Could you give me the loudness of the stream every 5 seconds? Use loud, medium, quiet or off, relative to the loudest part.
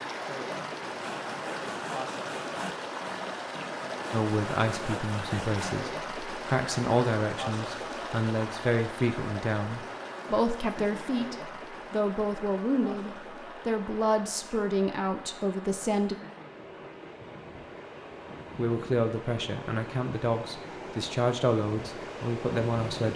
loud, loud, medium, medium, loud.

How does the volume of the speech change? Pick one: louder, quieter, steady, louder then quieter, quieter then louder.
steady.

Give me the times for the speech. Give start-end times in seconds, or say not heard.
4.1-16.1, 18.6-23.1.